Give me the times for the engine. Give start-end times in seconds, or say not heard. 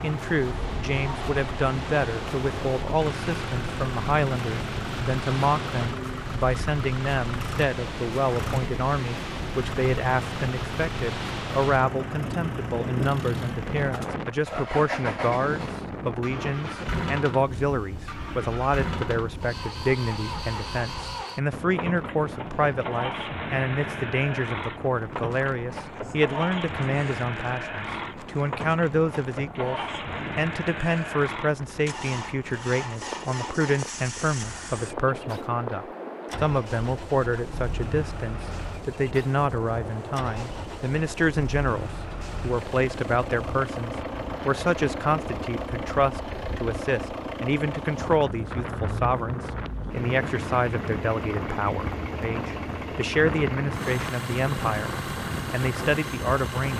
0.0-56.7.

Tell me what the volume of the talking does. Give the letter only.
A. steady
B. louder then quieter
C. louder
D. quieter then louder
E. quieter
A.